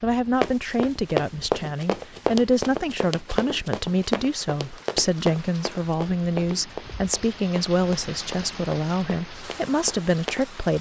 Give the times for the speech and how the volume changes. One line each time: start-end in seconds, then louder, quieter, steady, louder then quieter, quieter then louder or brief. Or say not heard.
0.0-10.7 steady.